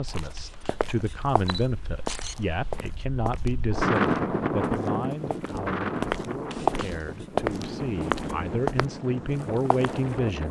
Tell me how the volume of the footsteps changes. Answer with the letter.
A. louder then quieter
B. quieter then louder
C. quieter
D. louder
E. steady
A.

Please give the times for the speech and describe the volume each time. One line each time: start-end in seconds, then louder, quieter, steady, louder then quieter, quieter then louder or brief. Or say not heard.
0.0-10.4 quieter then louder.